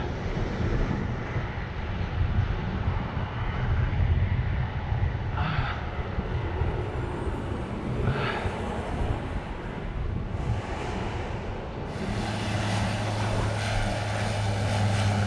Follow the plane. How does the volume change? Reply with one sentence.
The volume of the plane goes up.